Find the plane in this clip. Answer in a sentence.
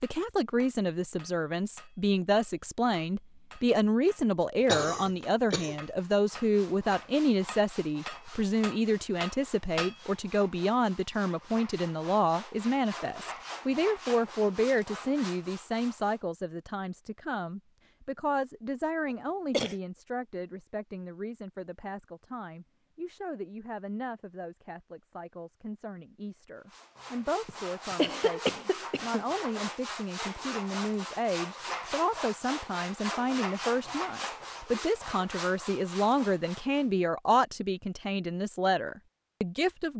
You can't hear the plane here.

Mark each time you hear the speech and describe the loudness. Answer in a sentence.
The speech can be heard from 0.0 to 39.9 s, getting quieter then louder.